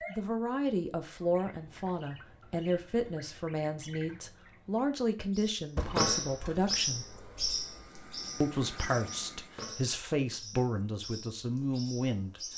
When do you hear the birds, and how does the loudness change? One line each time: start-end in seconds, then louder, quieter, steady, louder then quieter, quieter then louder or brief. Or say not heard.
0.0-12.5 louder then quieter.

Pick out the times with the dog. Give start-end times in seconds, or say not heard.
not heard.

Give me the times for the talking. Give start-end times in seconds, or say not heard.
0.1-7.0, 8.4-12.4.